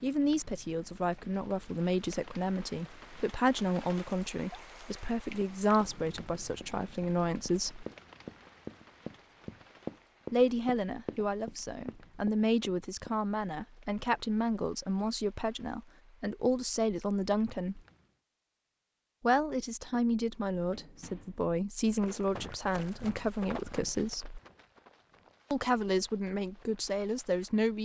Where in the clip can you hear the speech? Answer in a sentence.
The speech can be heard from 0.0 to 7.8 s, from 10.3 to 17.8 s, from 19.2 to 24.4 s and from 25.5 to 27.8 s.